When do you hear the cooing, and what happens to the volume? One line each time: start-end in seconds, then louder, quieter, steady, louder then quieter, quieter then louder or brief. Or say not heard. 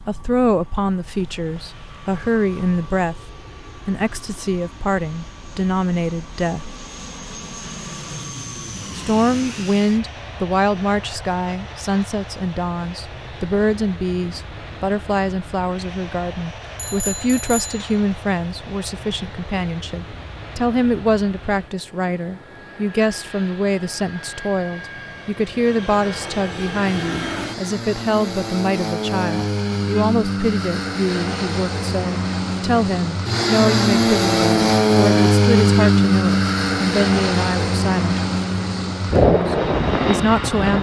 not heard.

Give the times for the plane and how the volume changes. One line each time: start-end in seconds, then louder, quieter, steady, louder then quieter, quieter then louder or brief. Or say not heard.
0.0-40.7 louder.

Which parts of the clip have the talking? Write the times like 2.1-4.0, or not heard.
0.0-6.7, 8.9-38.2, 39.2-40.7.